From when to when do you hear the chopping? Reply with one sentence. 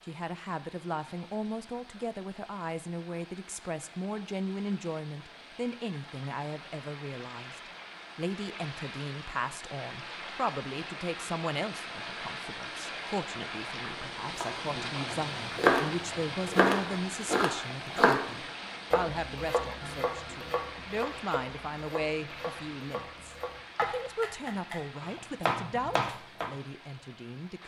You can hear the chopping from 14.4 to 18.3 s and from 18.9 to 26.5 s.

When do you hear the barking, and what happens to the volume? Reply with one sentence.
You can't hear the barking here.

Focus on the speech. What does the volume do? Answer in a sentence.
The volume of the speech stays about the same.